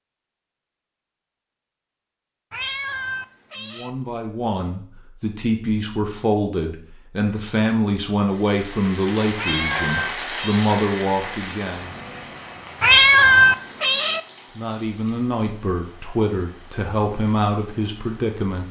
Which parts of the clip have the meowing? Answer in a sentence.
The meowing can be heard from 2.5 to 3.9 s, from 9.3 to 10.7 s and from 12.8 to 14.2 s.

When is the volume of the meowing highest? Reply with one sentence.
The volume of the meowing peaks at 13 seconds.